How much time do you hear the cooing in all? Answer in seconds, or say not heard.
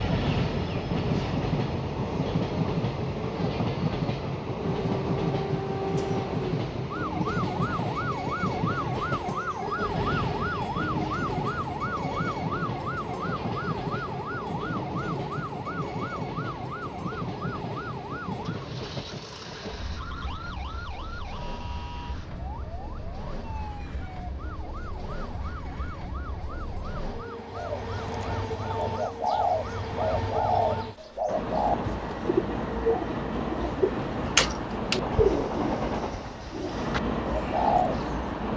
11 s.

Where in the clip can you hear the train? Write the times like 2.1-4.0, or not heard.
0.0-38.5.